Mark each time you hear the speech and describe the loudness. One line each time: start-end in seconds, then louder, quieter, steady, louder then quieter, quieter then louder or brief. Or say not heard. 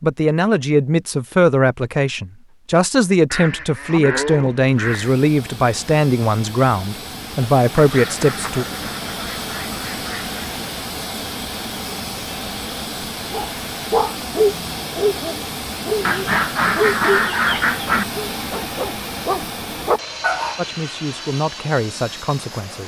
0.0-8.7 steady
20.6-22.8 brief.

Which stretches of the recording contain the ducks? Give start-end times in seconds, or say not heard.
3.3-5.2, 7.8-10.4, 16.0-18.1.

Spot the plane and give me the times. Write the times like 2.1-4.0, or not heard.
4.8-22.8.